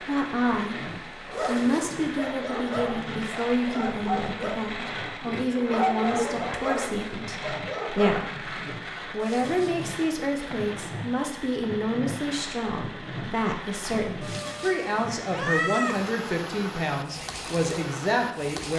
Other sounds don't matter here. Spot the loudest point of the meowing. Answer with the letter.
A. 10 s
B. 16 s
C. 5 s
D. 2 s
B.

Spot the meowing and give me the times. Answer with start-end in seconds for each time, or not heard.
1.3-1.9, 9.2-9.8, 14.2-16.1.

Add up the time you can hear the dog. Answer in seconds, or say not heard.
7 s.